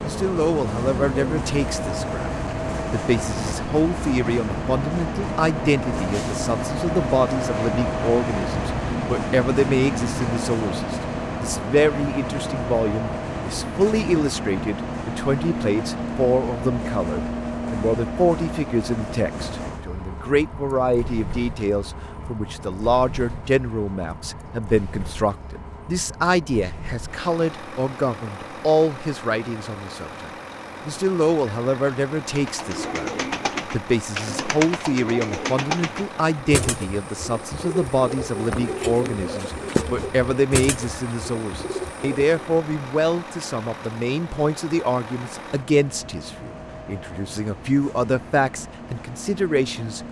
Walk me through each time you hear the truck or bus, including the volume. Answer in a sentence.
The truck or bus can be heard from 0.0 to 50.0 s, getting quieter.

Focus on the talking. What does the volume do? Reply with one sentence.
The loudness of the talking stays about the same.